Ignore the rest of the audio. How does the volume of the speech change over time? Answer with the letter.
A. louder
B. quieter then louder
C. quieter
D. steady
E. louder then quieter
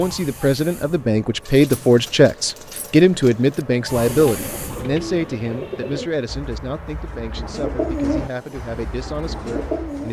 C.